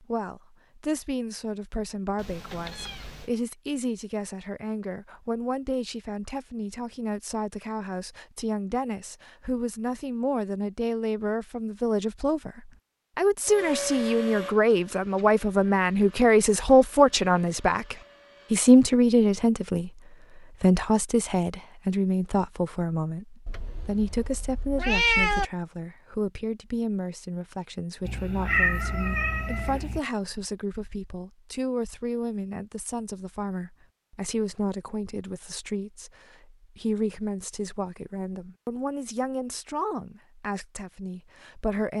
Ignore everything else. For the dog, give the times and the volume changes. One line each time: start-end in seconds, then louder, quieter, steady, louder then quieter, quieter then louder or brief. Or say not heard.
not heard.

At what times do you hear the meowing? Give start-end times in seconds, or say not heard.
2.1-3.3, 23.4-25.4, 28.1-30.0.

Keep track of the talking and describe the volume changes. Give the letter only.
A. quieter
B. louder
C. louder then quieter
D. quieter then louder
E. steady
C.